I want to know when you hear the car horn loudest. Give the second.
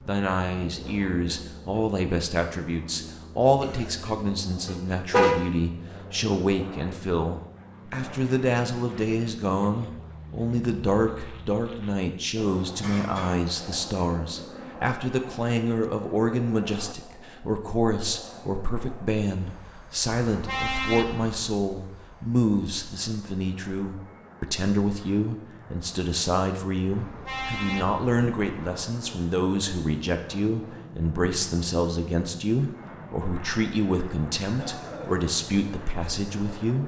5 s.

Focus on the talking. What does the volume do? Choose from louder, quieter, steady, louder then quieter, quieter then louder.
steady.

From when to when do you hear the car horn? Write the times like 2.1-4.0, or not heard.
4.7-5.3, 20.2-21.6, 26.9-28.9.